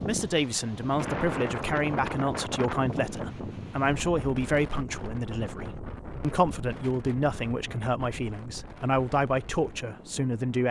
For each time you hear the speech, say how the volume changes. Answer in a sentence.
You can hear the speech from 0.1 to 10.6 s, at a steady volume.